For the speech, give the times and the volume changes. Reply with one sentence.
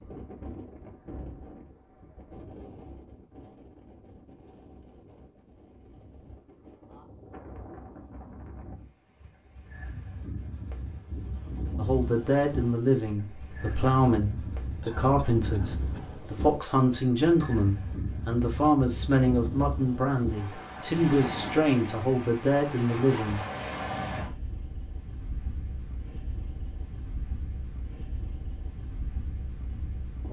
You can hear the speech from 11.8 to 23.4 s, at a steady volume.